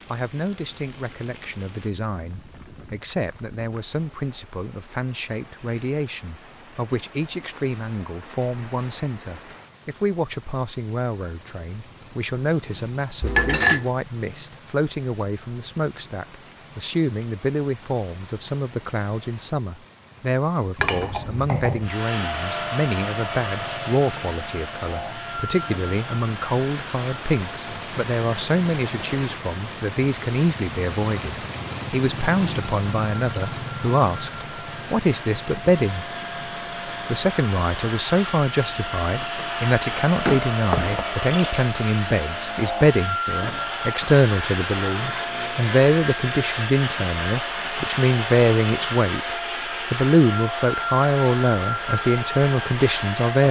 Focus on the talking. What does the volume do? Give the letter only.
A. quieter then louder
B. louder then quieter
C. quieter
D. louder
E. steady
D.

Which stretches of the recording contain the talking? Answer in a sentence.
The talking can be heard from 0.1 to 36.0 s and from 37.0 to 53.4 s.